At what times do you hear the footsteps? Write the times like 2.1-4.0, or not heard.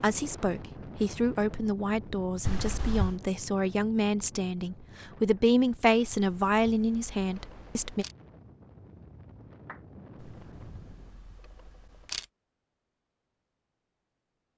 not heard.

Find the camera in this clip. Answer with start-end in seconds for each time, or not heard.
2.4-3.2, 6.1-8.2, 10.2-12.2.